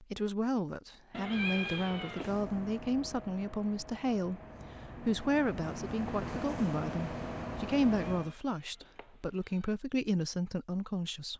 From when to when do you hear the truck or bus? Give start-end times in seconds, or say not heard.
2.0-8.3.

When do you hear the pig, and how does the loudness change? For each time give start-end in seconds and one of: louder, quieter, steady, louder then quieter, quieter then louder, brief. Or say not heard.
not heard.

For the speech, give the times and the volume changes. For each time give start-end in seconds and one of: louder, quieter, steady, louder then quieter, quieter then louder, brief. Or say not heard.
0.0-11.3 steady.